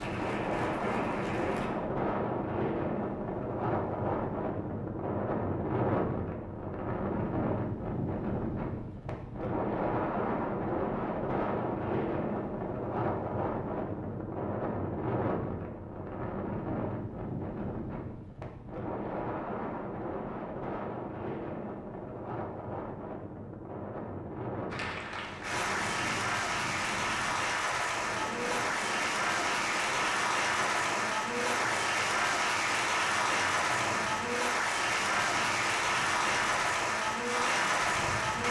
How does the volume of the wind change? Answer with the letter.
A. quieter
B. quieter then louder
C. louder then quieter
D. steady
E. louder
A.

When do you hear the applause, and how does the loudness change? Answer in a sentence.
You can hear the applause briefly from 0.0 to 1.7 s; and from 24.7 to 38.4 s, at a steady volume.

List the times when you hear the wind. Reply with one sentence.
You can hear the wind from 0.0 to 38.4 s.